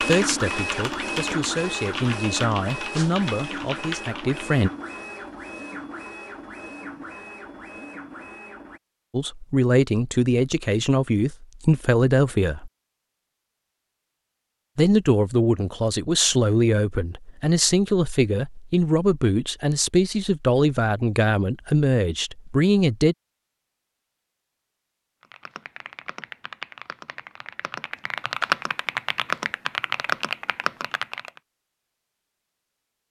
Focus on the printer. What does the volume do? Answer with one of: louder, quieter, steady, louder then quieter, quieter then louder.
quieter.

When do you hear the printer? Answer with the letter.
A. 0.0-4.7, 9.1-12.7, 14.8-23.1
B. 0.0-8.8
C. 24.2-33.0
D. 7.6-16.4
B.